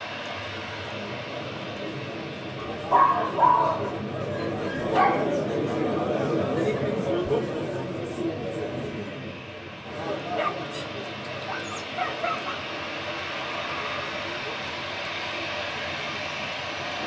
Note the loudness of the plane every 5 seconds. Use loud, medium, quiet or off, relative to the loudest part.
medium, quiet, loud, loud.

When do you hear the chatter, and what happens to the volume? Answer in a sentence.
The chatter can be heard from 0.0 to 17.0 s, getting louder then quieter.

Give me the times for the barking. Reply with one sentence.
The barking can be heard from 2.5 to 5.2 s and from 10.3 to 12.6 s.